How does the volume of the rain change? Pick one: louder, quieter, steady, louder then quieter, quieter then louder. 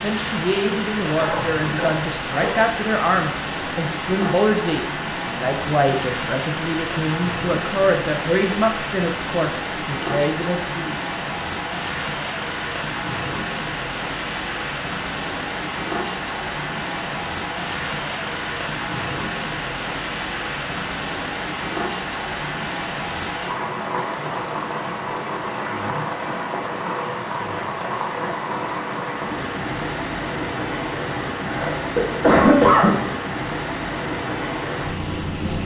steady.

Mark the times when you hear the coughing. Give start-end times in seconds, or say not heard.
1.1-2.6, 31.4-33.0.